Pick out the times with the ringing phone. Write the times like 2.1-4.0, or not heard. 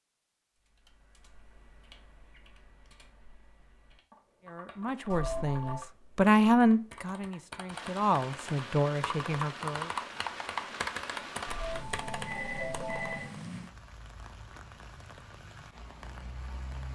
5.1-5.8, 11.4-13.3.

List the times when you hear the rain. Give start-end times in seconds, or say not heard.
7.7-16.9.